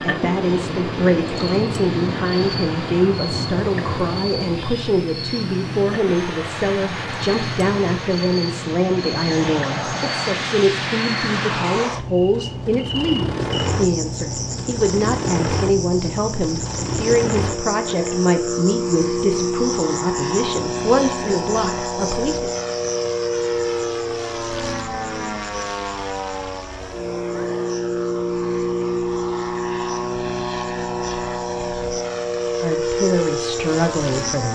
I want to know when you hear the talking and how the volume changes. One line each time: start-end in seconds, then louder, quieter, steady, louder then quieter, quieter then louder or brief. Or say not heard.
0.0-22.5 steady
32.6-34.5 brief.